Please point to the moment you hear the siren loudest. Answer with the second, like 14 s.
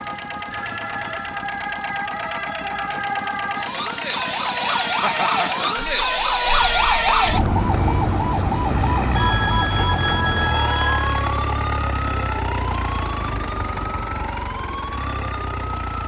7 s.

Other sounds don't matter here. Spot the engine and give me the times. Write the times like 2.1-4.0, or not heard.
0.0-16.0.